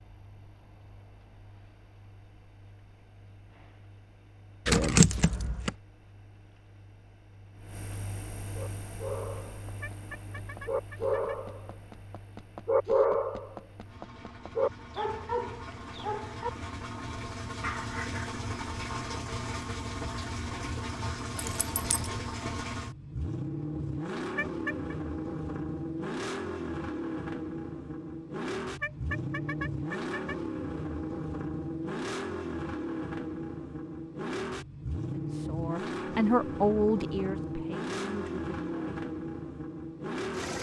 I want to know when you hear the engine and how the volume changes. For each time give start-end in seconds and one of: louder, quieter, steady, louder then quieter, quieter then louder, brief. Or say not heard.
0.0-40.5 louder.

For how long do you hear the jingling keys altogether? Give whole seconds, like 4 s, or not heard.
2 s.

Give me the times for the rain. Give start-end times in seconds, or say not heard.
not heard.